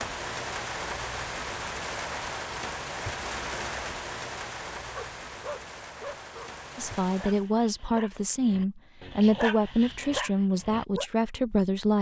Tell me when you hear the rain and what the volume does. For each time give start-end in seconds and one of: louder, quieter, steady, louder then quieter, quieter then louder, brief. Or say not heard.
0.0-7.5 quieter.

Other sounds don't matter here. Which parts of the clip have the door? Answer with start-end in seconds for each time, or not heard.
not heard.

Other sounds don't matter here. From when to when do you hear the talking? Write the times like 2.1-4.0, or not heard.
6.8-11.9.